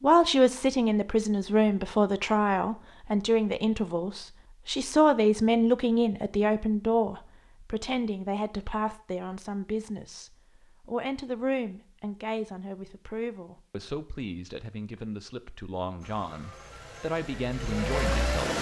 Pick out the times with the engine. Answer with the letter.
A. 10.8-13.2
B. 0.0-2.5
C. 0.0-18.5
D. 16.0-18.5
D.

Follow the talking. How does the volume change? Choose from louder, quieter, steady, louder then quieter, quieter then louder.
quieter.